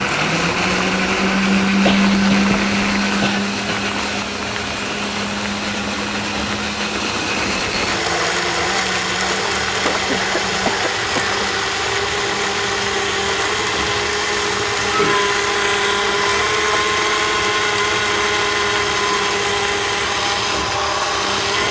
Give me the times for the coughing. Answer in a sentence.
You can hear the coughing from 1.9 to 3.8 s, from 9.7 to 11.4 s and from 14.9 to 15.3 s.